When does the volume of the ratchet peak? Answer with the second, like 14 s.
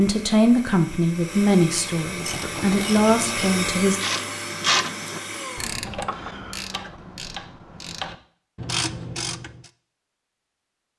5 s.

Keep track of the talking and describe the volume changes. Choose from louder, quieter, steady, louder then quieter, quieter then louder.
quieter then louder.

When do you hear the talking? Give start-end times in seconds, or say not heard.
0.0-4.0.